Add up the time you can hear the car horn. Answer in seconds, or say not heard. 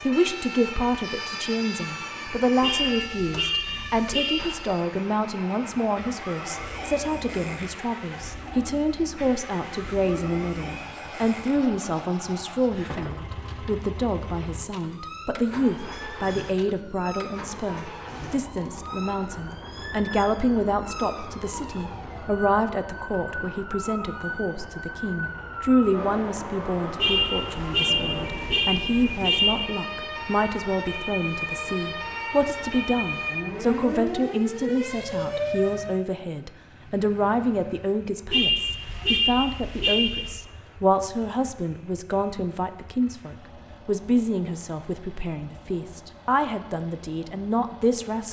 7 s.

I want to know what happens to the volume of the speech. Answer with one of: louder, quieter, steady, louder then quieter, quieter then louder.
steady.